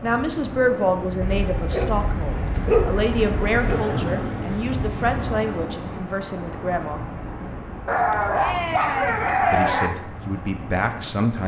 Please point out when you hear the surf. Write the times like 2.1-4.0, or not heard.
0.0-11.4.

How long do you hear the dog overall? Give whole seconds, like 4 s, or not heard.
5 s.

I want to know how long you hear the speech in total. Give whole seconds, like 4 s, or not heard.
9 s.